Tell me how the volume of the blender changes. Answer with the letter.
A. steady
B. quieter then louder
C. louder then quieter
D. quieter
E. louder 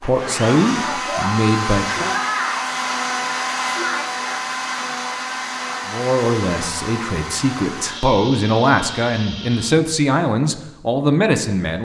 D.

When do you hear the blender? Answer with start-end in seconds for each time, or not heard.
0.0-9.8.